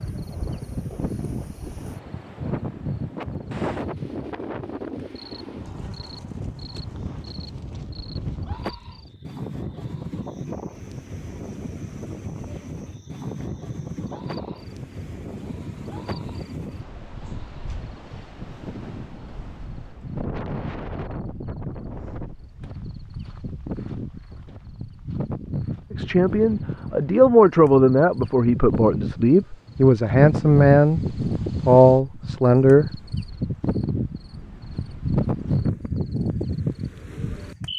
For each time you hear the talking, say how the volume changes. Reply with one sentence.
The talking can be heard from 25.9 to 32.9 s, at a steady volume.